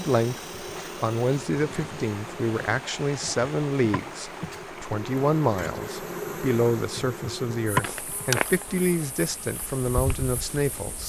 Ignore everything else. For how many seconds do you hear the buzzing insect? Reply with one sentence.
You can hear the buzzing insect for 11 seconds altogether.